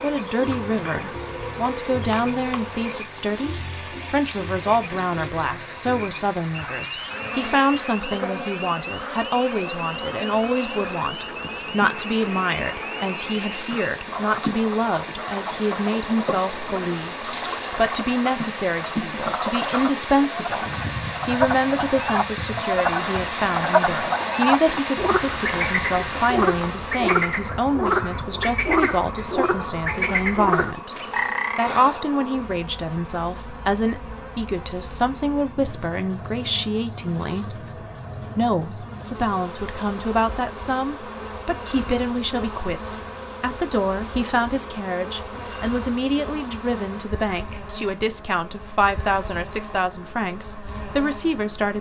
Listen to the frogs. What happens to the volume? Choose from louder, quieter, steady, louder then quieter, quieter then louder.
louder.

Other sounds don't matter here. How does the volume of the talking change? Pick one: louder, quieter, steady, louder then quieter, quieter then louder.
steady.